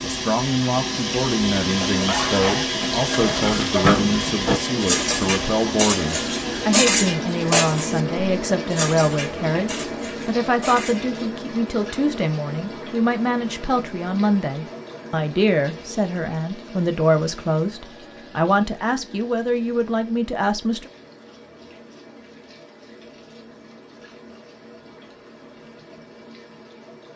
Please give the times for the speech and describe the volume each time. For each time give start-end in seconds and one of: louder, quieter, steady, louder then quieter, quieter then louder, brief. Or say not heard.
0.0-20.9 steady.